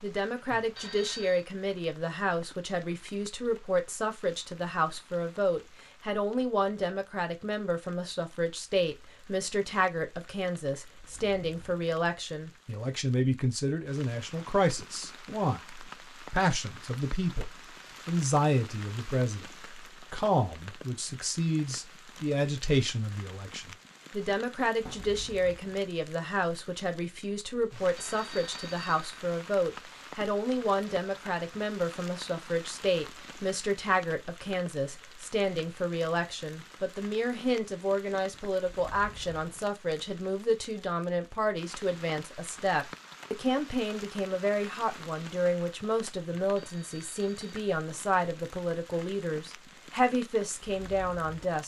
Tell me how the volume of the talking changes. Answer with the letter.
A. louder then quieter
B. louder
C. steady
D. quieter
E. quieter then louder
C.